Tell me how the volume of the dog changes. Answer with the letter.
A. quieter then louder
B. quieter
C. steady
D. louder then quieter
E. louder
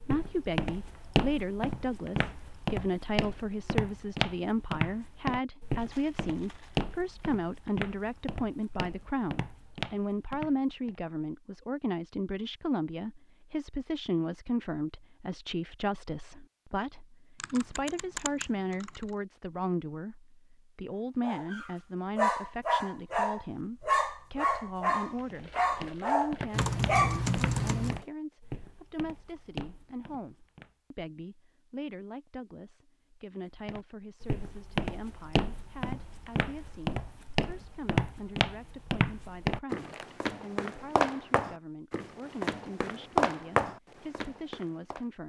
C.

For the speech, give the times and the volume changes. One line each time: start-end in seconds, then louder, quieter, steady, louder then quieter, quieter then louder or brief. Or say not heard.
0.0-45.2 quieter.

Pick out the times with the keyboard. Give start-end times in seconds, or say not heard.
17.4-19.1, 26.5-28.1.